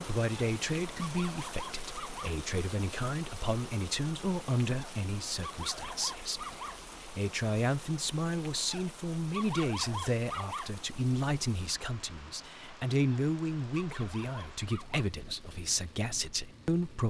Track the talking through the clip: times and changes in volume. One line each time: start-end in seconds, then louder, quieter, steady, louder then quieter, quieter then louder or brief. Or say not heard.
0.0-17.0 steady.